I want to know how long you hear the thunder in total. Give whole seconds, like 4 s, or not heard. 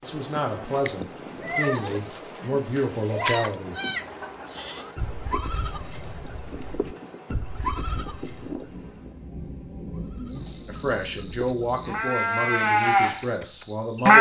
3 s.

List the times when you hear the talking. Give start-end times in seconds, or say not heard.
0.0-3.8, 10.7-14.1.